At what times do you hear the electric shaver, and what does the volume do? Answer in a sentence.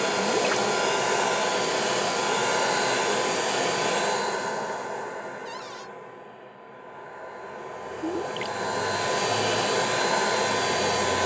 You can't hear the electric shaver here.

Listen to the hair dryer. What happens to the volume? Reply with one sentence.
The loudness of the hair dryer goes down, then up.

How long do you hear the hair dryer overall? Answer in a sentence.
The hair dryer can be heard for 11 seconds in total.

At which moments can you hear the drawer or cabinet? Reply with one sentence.
The drawer or cabinet can be heard from 5.5 to 5.9 s.